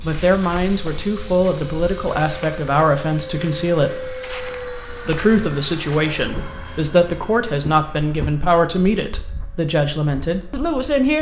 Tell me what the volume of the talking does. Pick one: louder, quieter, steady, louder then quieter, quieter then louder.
steady.